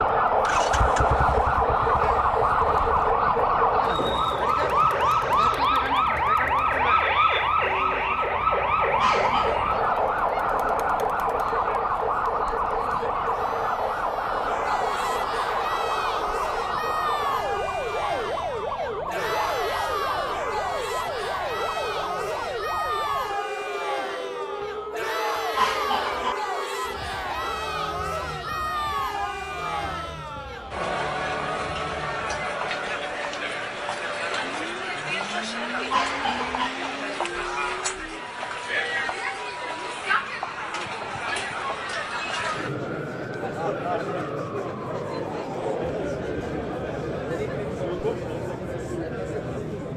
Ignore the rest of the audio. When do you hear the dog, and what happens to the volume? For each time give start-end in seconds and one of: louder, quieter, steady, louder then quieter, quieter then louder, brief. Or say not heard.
not heard.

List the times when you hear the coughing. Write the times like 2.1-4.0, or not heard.
8.9-9.6, 25.6-26.4, 35.9-36.7.